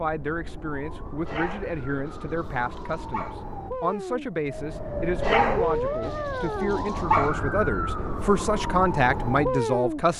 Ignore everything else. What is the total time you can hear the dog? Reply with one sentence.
The dog can be heard for 4 seconds in total.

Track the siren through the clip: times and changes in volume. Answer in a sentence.
The siren can be heard from 0.0 to 10.1 s, getting louder.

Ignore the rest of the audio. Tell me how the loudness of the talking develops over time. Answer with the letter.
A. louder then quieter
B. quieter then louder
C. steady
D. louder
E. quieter
D.